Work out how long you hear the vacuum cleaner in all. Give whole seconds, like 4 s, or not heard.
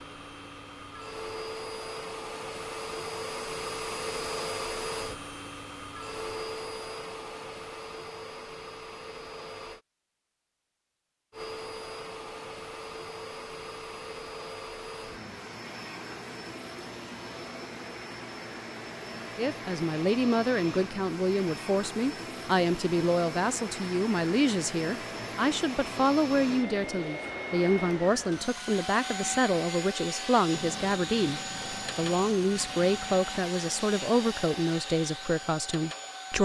35 s.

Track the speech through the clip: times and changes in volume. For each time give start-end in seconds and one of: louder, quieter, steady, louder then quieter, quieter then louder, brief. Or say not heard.
19.4-36.4 steady.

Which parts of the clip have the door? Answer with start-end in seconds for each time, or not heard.
not heard.